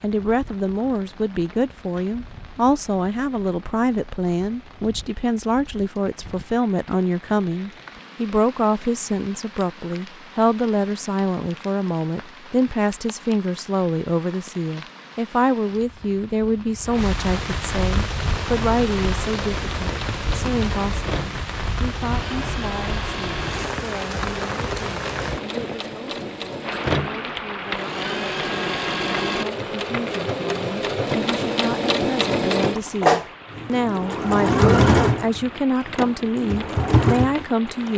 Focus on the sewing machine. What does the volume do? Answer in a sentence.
The volume of the sewing machine goes up.